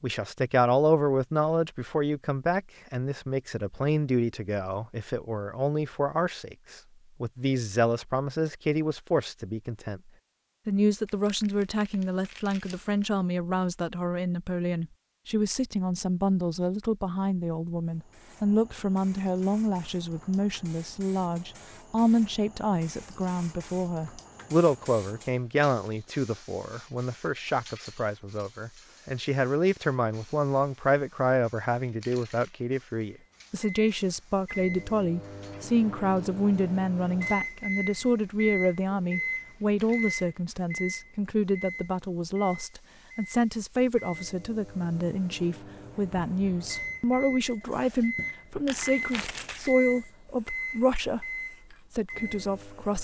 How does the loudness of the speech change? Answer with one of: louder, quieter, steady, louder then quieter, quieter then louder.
steady.